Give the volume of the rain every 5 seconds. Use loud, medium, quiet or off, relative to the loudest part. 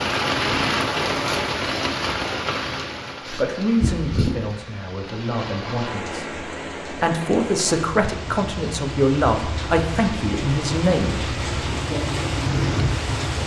loud, medium, loud.